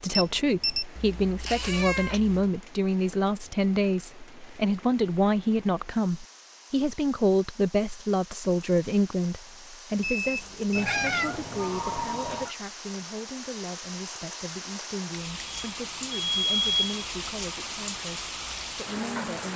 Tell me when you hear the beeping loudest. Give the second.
17 s.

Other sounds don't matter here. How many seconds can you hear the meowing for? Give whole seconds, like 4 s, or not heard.
3 s.